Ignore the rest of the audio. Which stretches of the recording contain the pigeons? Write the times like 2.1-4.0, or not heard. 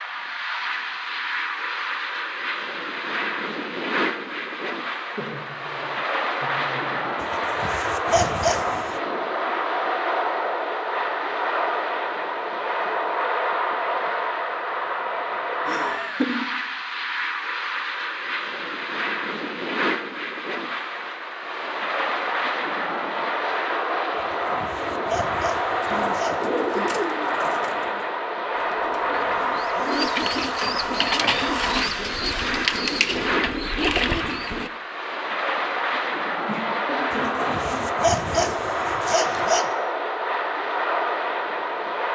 25.8-34.7.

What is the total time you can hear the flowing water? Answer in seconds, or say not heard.
not heard.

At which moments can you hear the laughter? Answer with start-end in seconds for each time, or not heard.
5.2-7.0, 15.7-16.4, 36.5-37.8.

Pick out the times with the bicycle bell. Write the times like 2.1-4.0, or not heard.
not heard.